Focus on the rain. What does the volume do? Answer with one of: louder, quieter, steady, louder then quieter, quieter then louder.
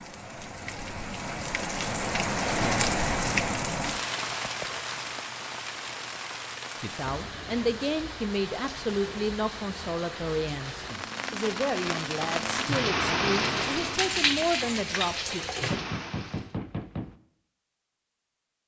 quieter then louder.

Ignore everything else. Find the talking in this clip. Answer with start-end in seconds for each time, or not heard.
6.8-15.4.